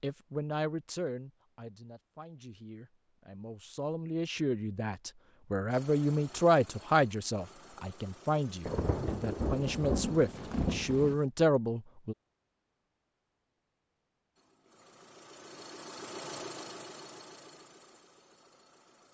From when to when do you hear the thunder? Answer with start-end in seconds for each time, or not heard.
8.7-11.2.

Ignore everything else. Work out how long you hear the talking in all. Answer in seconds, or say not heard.
12 s.